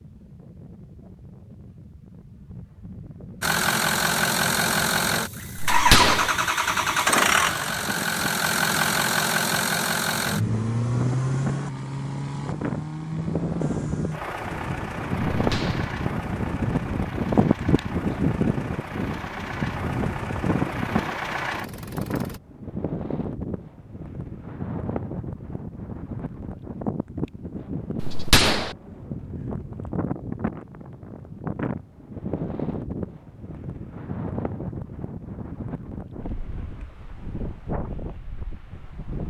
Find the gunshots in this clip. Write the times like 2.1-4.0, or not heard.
5.5-6.3, 15.3-15.9, 28.0-28.8.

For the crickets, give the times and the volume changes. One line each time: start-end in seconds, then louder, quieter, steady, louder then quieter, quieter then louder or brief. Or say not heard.
not heard.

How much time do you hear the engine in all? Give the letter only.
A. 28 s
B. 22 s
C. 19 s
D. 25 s
C.